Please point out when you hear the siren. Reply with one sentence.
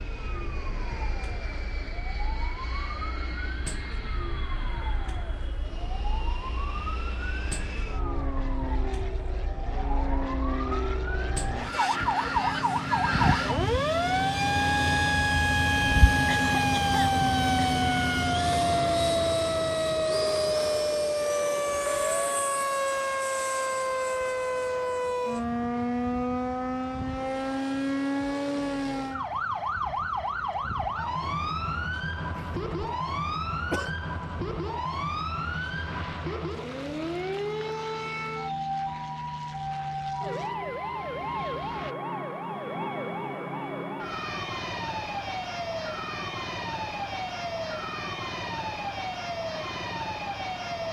The siren can be heard from 0.0 to 50.8 s.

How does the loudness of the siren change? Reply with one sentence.
The loudness of the siren goes up, then down.